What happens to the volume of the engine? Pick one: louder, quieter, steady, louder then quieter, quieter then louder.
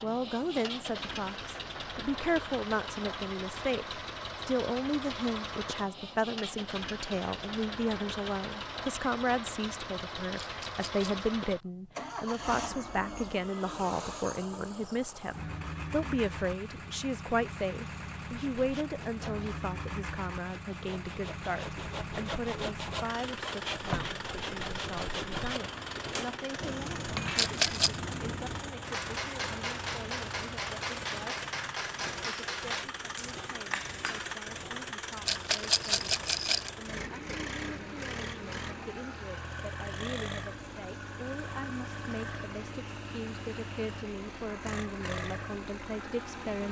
steady.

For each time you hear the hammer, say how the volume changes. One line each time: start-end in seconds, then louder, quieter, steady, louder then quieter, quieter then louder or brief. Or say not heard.
26.1-34.4 steady.